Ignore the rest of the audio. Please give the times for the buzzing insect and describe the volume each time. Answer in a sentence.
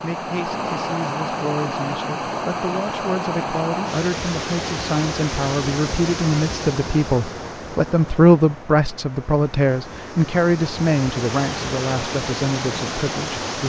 You can't hear the buzzing insect here.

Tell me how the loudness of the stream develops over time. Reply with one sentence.
The volume of the stream goes down, then up.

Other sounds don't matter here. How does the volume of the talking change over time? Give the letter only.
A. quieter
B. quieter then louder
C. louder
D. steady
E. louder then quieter
E.